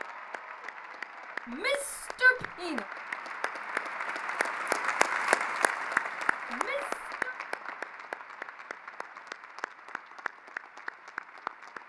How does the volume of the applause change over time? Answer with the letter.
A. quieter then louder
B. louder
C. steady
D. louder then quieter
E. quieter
D.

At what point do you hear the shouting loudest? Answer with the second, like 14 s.
2 s.